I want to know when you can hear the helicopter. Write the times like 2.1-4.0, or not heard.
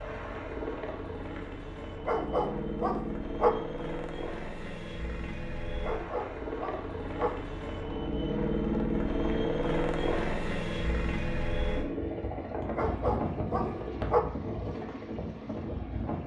0.0-16.2.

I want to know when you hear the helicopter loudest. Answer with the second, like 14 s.
9 s.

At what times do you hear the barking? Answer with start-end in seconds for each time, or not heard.
2.0-3.5, 5.8-7.3, 12.8-14.2.